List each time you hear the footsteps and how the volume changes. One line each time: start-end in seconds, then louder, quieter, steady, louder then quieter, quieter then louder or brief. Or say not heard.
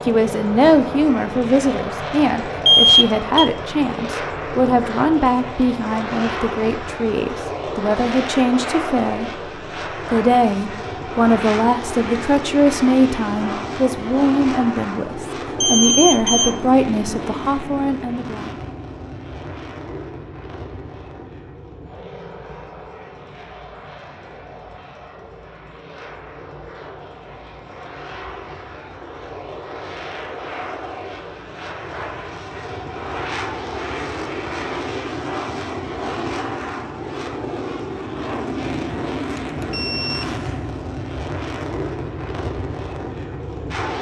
not heard.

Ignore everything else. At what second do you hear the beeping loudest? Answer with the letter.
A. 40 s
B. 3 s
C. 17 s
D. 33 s
B.